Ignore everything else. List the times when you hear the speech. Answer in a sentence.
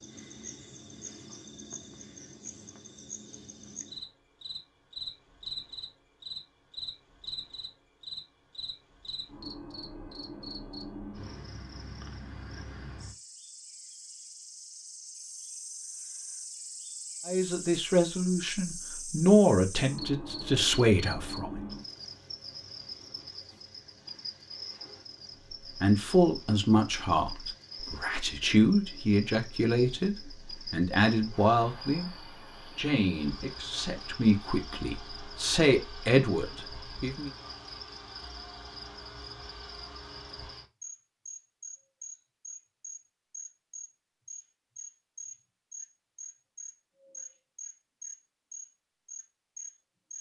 You can hear the speech from 17.2 to 21.6 s, from 25.8 to 32.1 s and from 32.8 to 37.3 s.